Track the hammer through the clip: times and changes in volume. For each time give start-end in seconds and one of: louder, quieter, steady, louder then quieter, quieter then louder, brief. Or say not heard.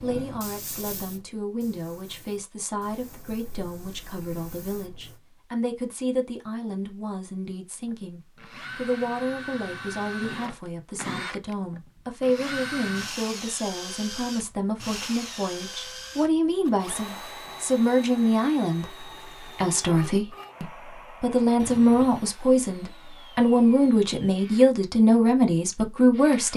not heard.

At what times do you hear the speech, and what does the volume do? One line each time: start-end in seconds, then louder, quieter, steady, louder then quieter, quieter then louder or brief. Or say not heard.
0.0-26.5 louder.